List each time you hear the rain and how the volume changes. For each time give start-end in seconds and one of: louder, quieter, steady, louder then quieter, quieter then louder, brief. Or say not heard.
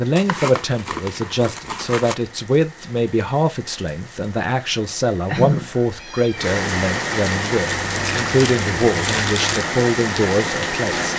0.0-11.1 louder.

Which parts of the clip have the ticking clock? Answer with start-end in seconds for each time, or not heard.
not heard.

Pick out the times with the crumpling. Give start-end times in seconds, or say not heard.
0.1-2.1, 7.8-9.7.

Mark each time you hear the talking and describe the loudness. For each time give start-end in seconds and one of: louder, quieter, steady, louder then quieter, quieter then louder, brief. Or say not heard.
0.0-11.1 steady.